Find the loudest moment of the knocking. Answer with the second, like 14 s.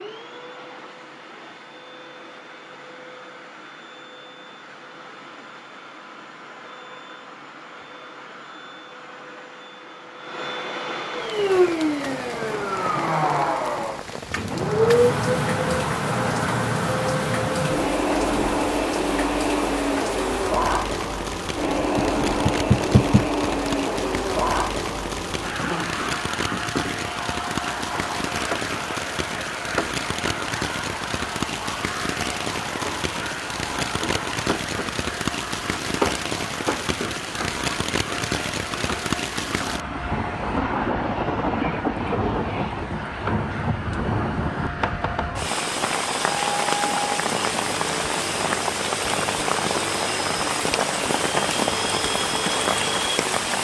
23 s.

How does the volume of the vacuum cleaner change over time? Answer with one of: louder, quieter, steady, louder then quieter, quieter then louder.
louder then quieter.